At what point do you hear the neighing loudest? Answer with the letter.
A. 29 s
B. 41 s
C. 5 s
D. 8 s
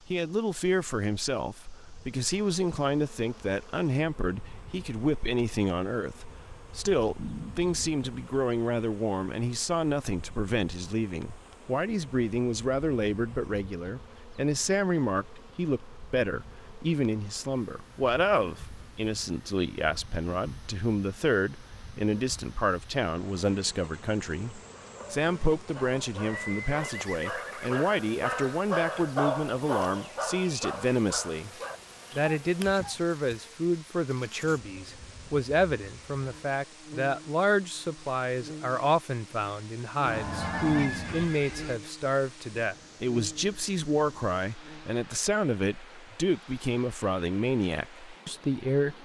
B.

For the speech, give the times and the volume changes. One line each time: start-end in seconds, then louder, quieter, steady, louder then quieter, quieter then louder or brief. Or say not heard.
0.1-31.5 steady
32.1-48.9 steady.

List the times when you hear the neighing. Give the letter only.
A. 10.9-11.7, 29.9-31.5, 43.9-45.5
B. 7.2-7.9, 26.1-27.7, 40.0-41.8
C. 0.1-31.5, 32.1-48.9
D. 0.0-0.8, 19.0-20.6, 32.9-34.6
B.